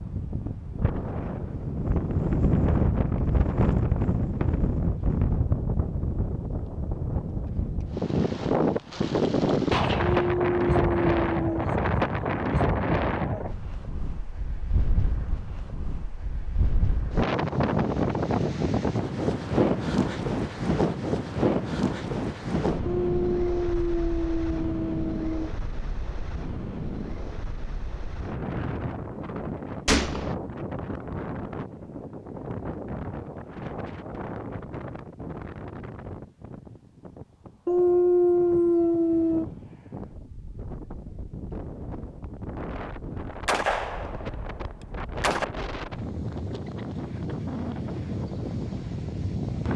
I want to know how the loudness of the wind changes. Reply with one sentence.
The loudness of the wind goes down.